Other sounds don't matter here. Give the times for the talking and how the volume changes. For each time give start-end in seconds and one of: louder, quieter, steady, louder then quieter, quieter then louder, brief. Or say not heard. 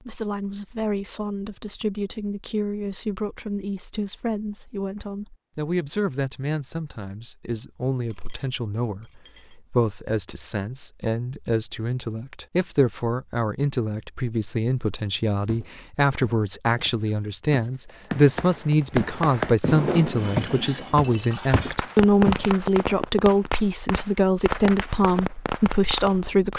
0.0-26.5 louder.